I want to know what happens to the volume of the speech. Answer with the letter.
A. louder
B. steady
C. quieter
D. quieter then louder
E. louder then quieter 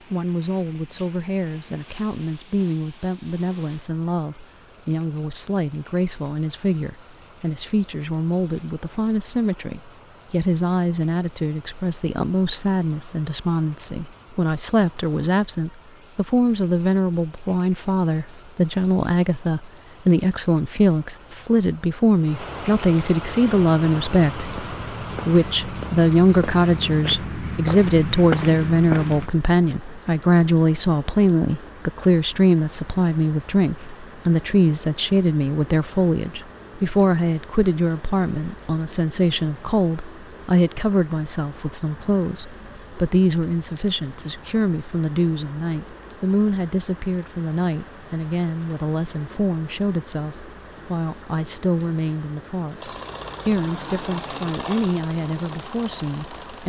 E.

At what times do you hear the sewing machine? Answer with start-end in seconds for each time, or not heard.
52.8-56.6.